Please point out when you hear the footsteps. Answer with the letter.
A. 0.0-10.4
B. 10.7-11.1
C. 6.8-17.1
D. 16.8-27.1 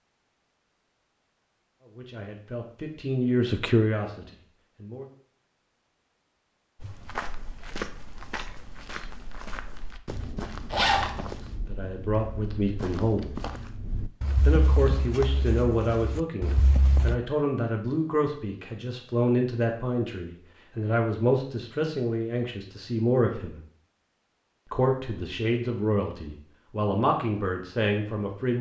C.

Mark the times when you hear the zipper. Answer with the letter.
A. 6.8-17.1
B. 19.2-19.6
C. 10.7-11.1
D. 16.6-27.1
C.